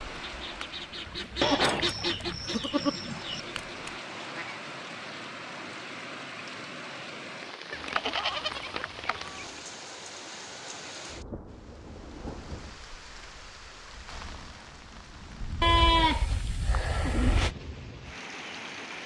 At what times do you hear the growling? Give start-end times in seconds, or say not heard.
not heard.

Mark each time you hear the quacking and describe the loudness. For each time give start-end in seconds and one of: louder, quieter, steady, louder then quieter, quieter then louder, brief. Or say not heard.
0.1-4.6 louder then quieter.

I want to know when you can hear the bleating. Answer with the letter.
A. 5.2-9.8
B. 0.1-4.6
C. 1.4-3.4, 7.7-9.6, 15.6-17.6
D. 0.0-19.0
C.